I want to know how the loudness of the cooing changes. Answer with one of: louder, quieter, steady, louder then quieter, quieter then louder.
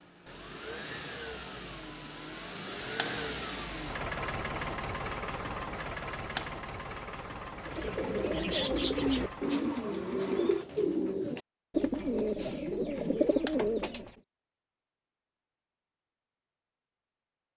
steady.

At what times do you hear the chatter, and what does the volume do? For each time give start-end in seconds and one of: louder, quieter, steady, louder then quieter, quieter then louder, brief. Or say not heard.
not heard.